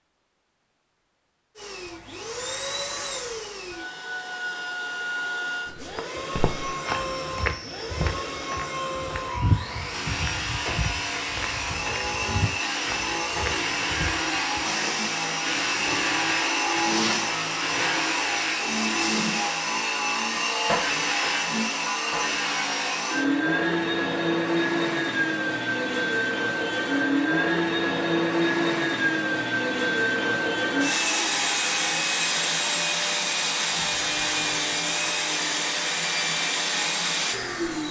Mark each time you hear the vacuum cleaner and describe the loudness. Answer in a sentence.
The vacuum cleaner can be heard from 1.6 to 37.8 s, getting louder.